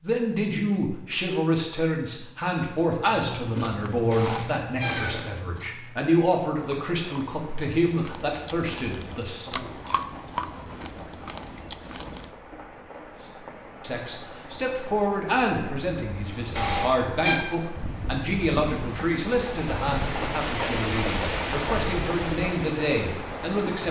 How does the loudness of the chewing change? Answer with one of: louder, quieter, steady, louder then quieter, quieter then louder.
quieter then louder.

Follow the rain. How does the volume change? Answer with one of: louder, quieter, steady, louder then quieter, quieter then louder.
louder.